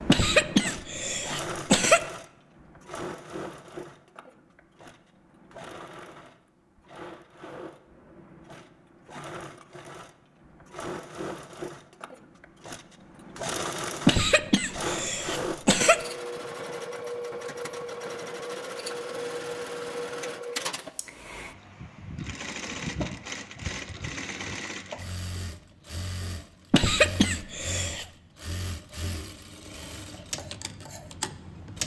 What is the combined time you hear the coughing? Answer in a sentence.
The coughing can be heard for 5 seconds in total.